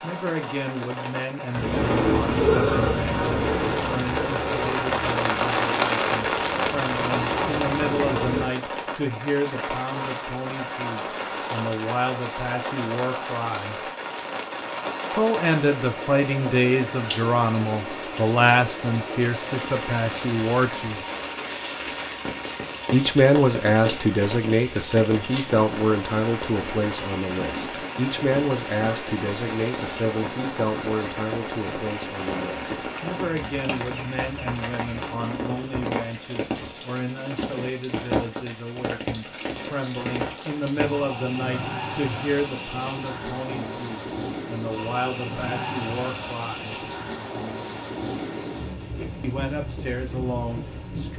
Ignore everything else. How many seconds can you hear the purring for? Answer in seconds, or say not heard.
7 s.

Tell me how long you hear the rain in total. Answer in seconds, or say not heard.
51 s.